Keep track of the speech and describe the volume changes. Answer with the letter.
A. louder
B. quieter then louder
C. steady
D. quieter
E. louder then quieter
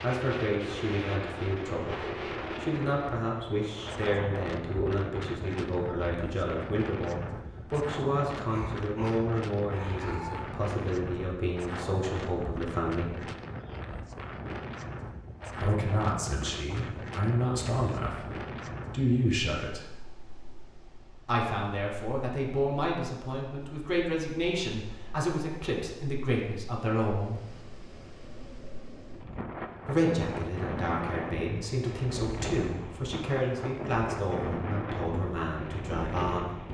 C.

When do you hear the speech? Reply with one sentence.
The speech can be heard from 0.0 to 13.2 s, from 15.5 to 19.9 s, from 21.2 to 27.4 s and from 29.9 to 36.6 s.